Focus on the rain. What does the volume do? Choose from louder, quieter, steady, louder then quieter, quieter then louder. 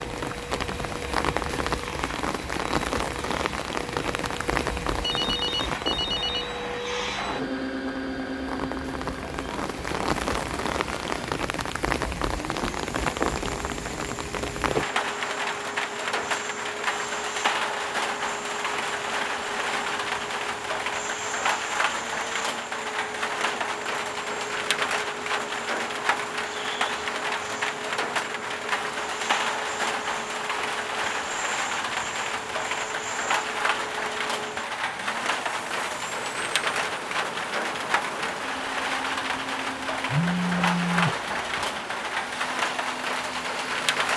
steady.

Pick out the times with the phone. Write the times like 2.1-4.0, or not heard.
5.0-6.5, 40.1-41.1.